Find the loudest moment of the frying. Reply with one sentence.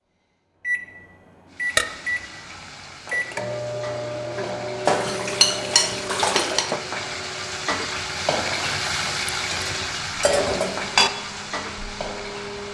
The loudest moment of the frying is at 9 seconds.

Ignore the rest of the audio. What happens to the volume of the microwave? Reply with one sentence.
The volume of the microwave goes down.